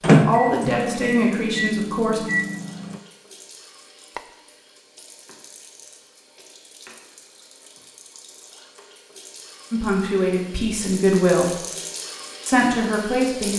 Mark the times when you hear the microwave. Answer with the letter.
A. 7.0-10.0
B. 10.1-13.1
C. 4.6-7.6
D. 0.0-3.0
D.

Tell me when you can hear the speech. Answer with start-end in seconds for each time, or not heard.
0.1-2.2, 9.7-11.6, 12.4-13.5.